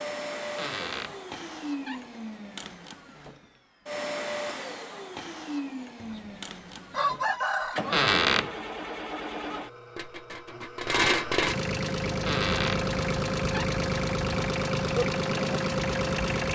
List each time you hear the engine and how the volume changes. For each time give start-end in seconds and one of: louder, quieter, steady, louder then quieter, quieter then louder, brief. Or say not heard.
0.0-16.4 louder.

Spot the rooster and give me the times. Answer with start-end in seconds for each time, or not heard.
6.0-8.0.